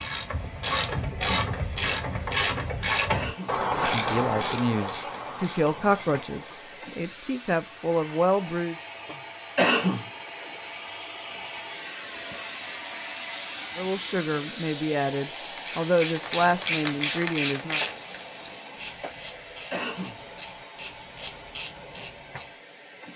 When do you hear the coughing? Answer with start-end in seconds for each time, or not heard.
3.1-3.5, 9.6-10.1, 19.7-20.1.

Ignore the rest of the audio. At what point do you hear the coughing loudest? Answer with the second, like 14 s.
10 s.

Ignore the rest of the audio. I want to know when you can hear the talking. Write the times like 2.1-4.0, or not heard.
3.7-8.8, 13.8-17.8.